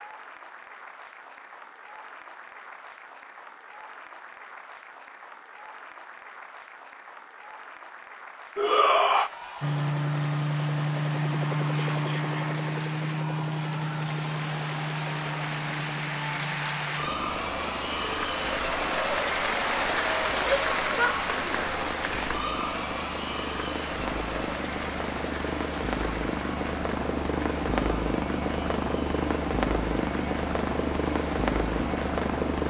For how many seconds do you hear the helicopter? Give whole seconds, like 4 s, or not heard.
23 s.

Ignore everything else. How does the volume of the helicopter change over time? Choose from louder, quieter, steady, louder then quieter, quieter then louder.
quieter then louder.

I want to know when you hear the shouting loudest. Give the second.
9 s.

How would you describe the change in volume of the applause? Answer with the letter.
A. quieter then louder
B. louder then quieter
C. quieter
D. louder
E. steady
B.